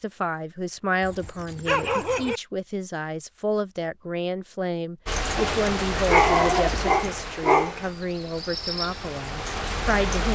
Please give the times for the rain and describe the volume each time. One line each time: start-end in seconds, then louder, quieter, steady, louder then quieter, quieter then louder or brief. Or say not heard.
5.0-10.2 quieter then louder.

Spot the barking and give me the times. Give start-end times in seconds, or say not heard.
1.0-2.4, 5.3-7.9.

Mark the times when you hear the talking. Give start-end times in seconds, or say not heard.
0.0-10.2.